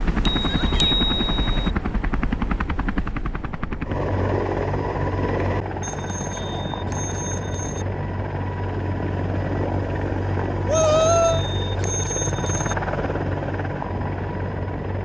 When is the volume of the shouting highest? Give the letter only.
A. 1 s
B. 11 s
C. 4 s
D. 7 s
B.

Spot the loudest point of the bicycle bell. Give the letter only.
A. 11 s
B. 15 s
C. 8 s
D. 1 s
D.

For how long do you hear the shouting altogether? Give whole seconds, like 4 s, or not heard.
2 s.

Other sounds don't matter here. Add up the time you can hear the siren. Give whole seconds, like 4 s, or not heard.
not heard.